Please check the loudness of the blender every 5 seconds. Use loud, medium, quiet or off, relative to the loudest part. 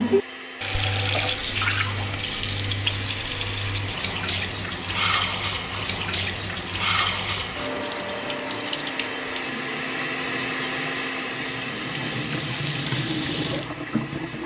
medium, loud, loud.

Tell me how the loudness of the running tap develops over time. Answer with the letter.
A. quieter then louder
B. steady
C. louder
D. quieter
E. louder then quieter
A.